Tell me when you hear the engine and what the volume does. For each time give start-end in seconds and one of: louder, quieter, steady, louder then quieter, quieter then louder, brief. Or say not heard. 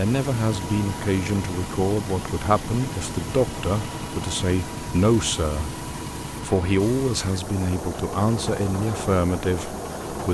0.0-10.2 steady.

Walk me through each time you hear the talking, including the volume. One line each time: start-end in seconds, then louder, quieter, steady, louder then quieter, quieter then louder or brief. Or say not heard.
0.0-10.2 steady.